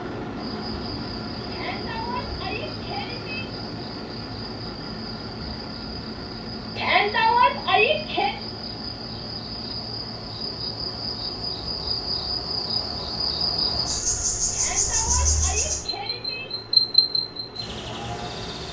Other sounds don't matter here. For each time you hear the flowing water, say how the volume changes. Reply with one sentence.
The flowing water can't be heard in this clip.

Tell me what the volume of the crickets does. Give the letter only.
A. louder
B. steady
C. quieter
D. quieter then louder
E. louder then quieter
A.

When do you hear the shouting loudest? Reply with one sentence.
The loudest moment of the shouting is at 7 seconds.